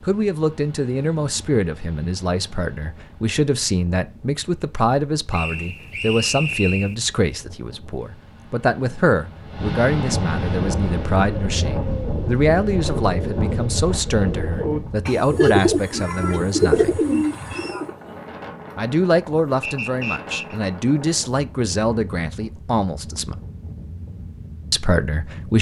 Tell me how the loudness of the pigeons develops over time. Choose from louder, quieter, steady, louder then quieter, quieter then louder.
louder.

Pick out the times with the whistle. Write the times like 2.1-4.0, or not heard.
5.3-7.0, 19.6-20.6.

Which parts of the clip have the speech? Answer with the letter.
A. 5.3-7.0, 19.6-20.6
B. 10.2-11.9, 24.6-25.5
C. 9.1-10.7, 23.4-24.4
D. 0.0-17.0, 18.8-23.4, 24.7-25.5
D.